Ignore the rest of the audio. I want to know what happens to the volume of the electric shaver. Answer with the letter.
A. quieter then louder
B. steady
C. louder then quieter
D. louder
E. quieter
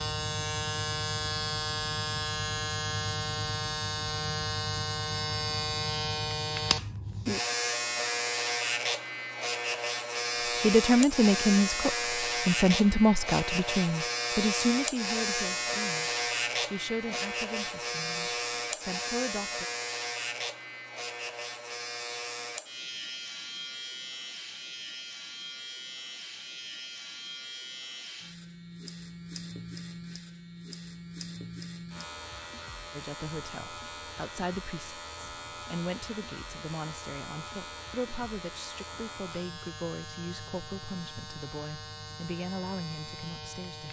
E.